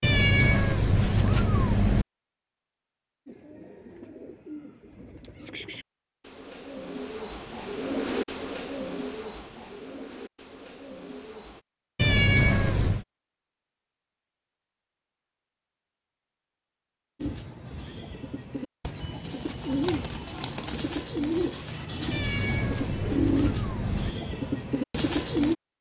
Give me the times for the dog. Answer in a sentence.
The dog can't be heard in this clip.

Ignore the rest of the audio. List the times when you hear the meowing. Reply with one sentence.
The meowing can be heard from 0.0 to 2.0 s, from 11.9 to 13.1 s and from 22.1 to 24.1 s.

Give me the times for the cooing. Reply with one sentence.
You can hear the cooing from 3.2 to 11.6 s and from 17.2 to 25.6 s.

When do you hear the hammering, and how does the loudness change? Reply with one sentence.
You can't hear the hammering here.